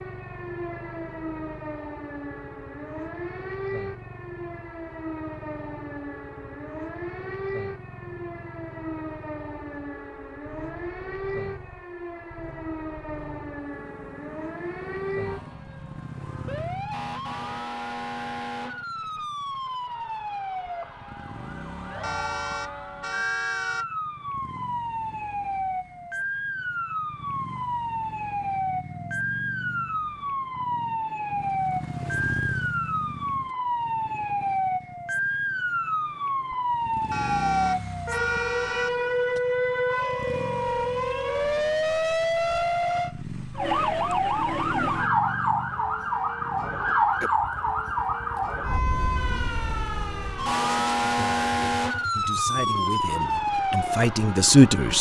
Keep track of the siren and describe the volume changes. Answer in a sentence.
The volume of the siren goes up.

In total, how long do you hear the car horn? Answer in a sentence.
You can hear the car horn for 4 seconds altogether.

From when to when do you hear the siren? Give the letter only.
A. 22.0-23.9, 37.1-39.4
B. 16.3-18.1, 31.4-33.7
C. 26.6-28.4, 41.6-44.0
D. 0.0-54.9
D.